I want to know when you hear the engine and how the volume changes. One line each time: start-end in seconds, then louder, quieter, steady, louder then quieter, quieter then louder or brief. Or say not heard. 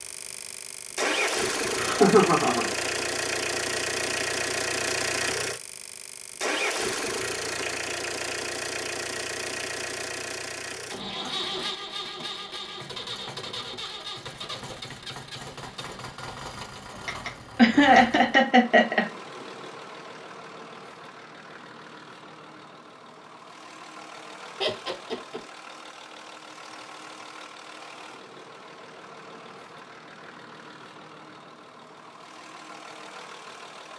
0.0-33.9 quieter.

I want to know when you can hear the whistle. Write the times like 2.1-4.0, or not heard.
not heard.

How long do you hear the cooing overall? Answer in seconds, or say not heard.
not heard.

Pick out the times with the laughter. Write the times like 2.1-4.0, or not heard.
1.8-2.7, 17.1-19.1, 24.6-25.4.